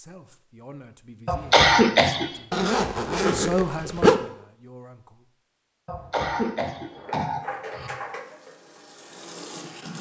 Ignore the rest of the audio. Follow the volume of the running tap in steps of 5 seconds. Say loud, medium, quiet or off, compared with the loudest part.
off, loud.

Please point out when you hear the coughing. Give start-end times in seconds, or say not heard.
1.2-2.5, 5.8-7.9.